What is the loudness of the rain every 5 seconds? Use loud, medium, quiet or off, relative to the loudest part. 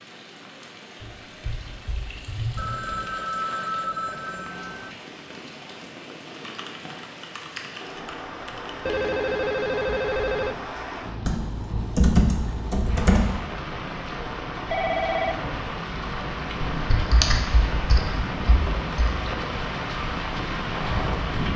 quiet, medium, medium, loud, loud.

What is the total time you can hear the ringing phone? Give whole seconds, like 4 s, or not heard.
5 s.